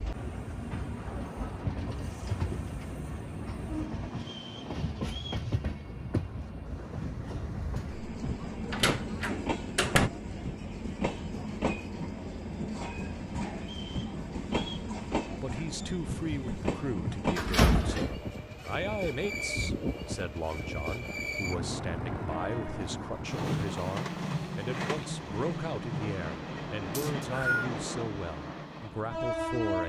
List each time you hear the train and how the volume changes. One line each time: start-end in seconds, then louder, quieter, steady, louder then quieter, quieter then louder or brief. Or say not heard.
0.0-29.8 steady.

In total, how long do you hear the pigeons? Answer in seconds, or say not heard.
not heard.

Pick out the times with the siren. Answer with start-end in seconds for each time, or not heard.
not heard.